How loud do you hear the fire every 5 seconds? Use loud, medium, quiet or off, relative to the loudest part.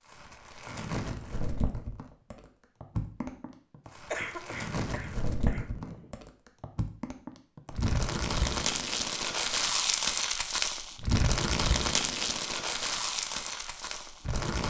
medium, loud, loud.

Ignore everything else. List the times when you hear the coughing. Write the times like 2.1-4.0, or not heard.
4.1-6.1.